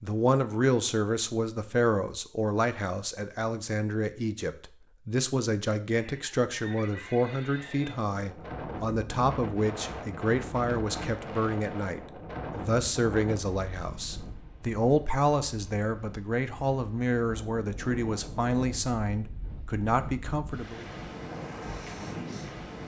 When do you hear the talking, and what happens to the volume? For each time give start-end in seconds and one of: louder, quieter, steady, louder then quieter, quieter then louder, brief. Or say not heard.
0.0-20.9 steady.